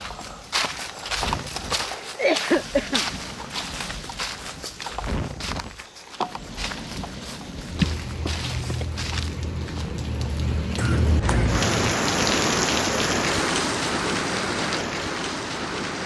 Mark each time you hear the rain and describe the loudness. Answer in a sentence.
The rain can be heard from 0.0 to 16.0 s, getting louder.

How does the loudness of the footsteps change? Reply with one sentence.
The loudness of the footsteps goes down.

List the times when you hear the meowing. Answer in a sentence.
The meowing can be heard from 10.8 to 11.9 s.